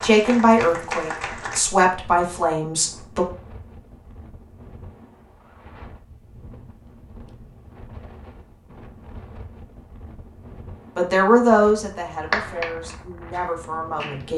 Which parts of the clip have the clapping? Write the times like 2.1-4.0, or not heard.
0.0-1.6, 12.3-14.3.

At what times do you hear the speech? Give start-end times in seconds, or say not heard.
0.0-3.2, 10.9-14.3.